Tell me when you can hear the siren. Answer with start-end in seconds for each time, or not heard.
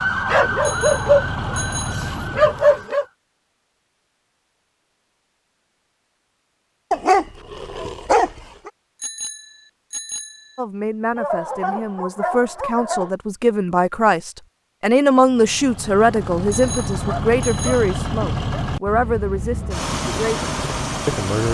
0.0-3.1, 19.4-21.4.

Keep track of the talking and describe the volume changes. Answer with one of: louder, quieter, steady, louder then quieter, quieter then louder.
louder then quieter.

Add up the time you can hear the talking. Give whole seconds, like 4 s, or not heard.
11 s.